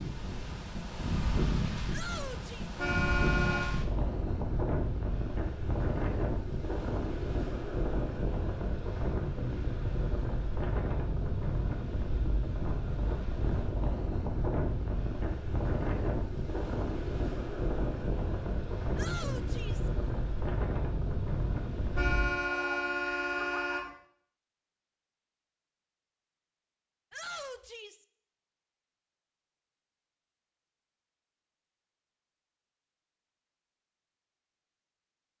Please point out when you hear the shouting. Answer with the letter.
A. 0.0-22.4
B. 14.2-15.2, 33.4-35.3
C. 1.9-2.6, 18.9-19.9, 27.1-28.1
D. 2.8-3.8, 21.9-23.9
C.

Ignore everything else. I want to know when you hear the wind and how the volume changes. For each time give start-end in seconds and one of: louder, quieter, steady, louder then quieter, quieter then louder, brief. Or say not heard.
0.0-22.4 steady.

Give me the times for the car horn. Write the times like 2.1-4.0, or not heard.
2.8-3.8, 21.9-23.9.